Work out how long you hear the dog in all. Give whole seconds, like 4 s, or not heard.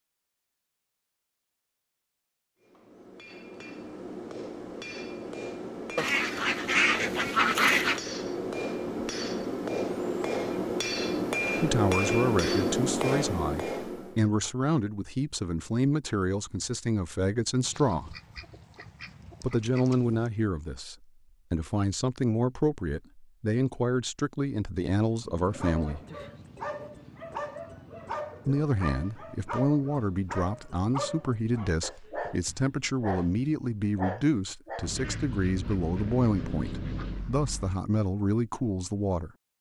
10 s.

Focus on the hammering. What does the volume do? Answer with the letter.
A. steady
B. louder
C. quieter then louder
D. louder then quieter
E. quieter
B.